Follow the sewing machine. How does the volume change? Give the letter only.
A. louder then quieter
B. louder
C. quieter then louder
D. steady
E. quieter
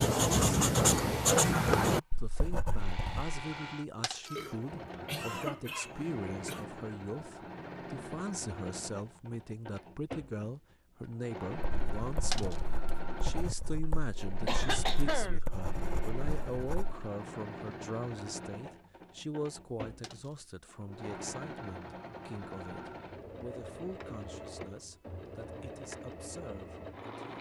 D.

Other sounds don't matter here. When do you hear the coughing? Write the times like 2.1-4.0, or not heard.
4.2-6.7, 14.4-15.4.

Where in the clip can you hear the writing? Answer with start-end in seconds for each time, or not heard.
0.0-3.4, 11.6-17.1.